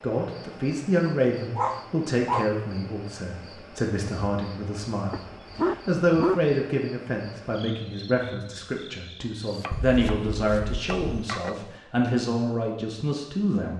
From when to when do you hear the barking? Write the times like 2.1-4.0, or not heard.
1.1-2.5, 5.1-6.5, 9.7-11.3.